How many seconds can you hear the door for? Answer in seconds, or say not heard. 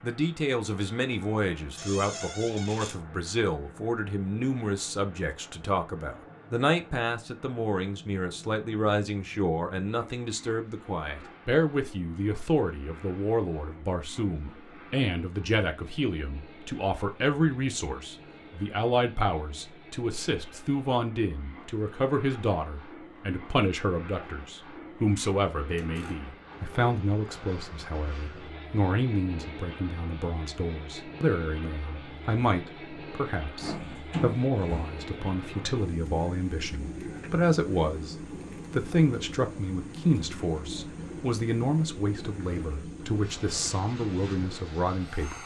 3 s.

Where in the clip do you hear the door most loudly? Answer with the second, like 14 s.
34 s.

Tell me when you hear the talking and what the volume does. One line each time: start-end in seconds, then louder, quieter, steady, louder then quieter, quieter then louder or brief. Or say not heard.
0.0-45.4 steady.